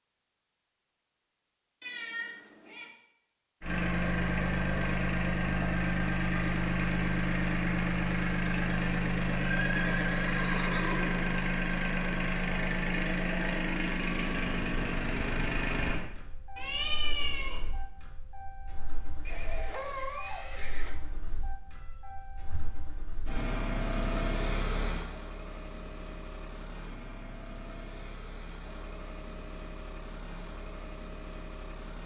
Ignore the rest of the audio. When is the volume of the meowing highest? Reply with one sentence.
The loudest moment of the meowing is at 17 seconds.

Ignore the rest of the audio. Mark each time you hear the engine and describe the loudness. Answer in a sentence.
The engine can be heard from 3.6 to 32.0 s, getting quieter.